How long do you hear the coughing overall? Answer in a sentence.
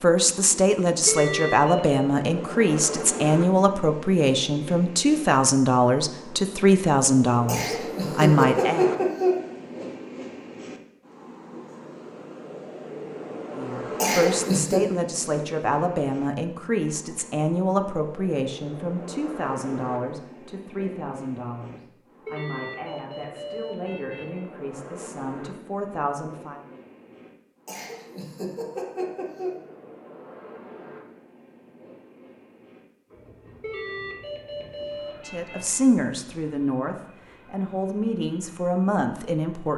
The coughing can be heard for 5 seconds in total.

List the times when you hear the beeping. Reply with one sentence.
You can hear the beeping from 1.1 to 2.0 s, from 22.2 to 24.4 s and from 33.6 to 35.8 s.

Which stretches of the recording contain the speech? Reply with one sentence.
The speech can be heard from 0.0 to 8.9 s, from 13.6 to 26.6 s and from 35.2 to 39.7 s.